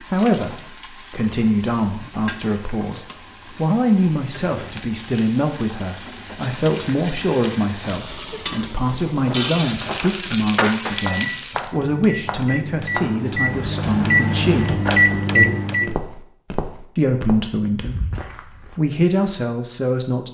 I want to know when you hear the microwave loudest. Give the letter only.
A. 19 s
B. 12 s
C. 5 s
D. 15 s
D.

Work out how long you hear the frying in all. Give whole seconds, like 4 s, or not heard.
12 s.